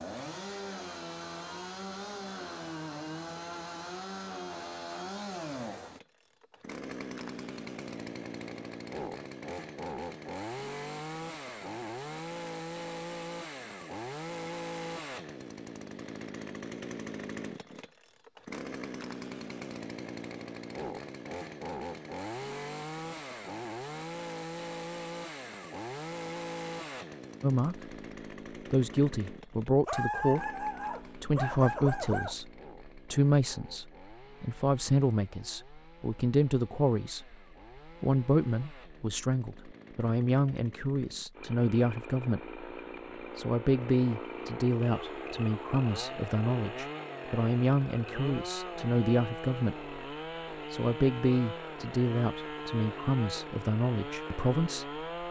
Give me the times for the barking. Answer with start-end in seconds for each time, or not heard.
29.9-32.4.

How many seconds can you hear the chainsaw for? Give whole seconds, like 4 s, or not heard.
55 s.